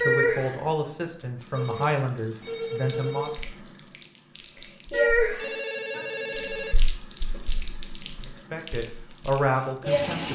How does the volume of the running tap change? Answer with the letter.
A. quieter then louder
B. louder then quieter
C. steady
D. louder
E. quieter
B.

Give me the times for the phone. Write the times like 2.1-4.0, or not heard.
1.6-3.4, 5.3-7.4.